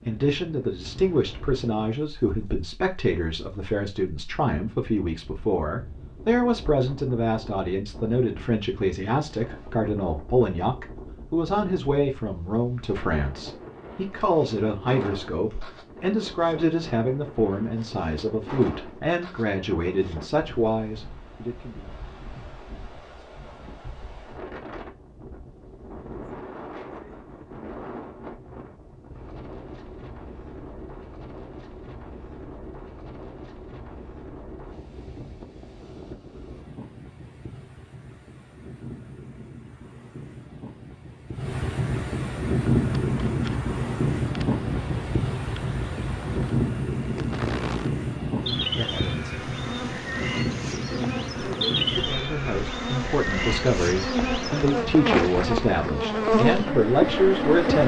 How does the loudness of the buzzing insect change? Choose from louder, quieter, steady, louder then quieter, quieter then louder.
louder.